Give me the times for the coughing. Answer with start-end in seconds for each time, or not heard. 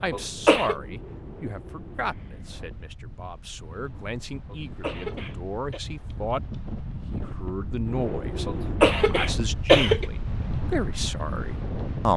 0.1-0.8, 4.5-5.8, 8.4-10.1.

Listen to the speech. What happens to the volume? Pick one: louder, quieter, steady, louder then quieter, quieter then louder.
quieter then louder.